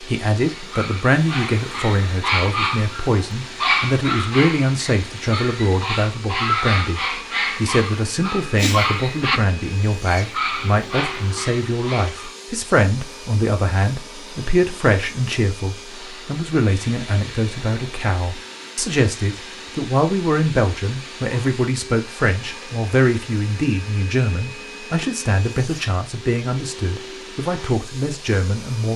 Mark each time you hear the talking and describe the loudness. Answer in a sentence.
You can hear the talking from 0.0 to 28.9 s, at a steady volume.